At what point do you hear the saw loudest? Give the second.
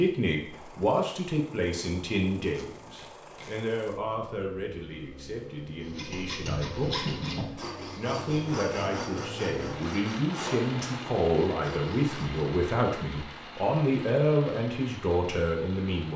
7 s.